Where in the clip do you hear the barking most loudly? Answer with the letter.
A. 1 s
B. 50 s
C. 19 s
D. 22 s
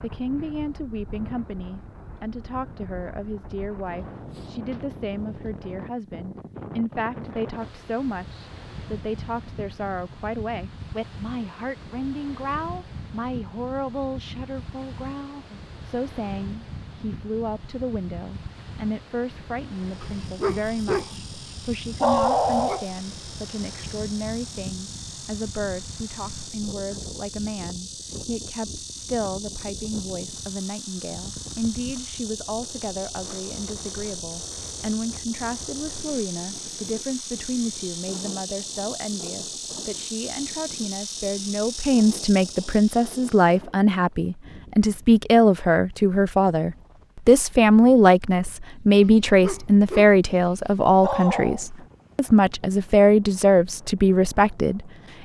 D.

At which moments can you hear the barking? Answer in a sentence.
The barking can be heard from 20.0 to 21.1 s, from 22.0 to 22.9 s, from 49.0 to 50.1 s and from 51.0 to 51.6 s.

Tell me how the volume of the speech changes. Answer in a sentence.
The loudness of the speech goes up.